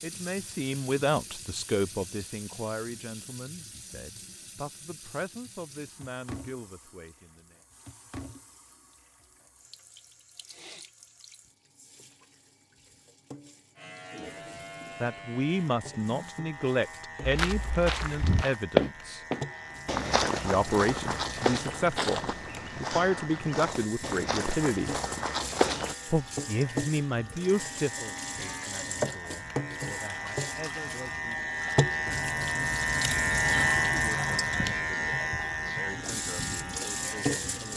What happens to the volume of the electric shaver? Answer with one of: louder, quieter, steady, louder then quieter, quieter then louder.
louder.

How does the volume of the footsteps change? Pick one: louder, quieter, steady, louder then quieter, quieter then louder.
quieter.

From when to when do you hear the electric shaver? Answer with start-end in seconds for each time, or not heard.
13.8-37.7.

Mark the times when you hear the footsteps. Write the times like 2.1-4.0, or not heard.
17.2-25.9.